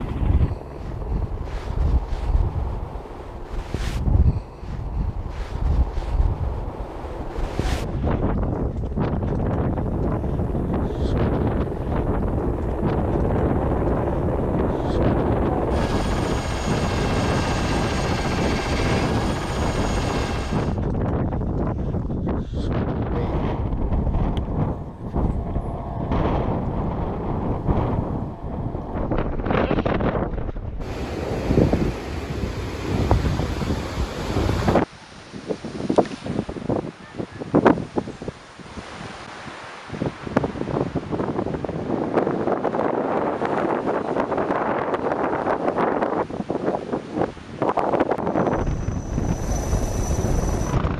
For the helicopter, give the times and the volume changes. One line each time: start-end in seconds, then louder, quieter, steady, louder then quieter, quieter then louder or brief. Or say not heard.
0.0-20.8 louder
48.5-50.9 brief.